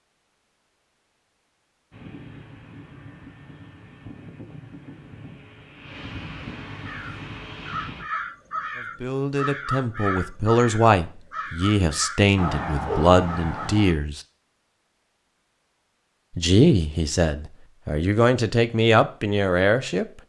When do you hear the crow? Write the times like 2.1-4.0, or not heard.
6.8-13.8.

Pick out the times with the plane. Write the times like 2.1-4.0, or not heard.
1.9-8.1.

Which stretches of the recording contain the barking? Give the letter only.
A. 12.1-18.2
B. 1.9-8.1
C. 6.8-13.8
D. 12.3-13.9
D.